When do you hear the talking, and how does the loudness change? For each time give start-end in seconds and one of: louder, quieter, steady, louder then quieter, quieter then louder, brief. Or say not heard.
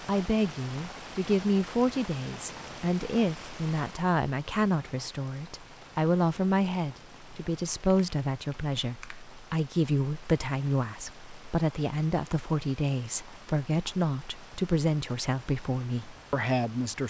0.0-17.0 steady.